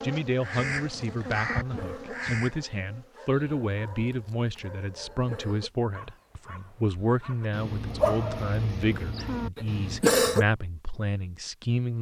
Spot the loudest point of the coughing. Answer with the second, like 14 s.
10 s.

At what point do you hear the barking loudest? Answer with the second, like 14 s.
8 s.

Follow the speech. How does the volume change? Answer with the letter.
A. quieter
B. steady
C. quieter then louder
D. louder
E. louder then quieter
B.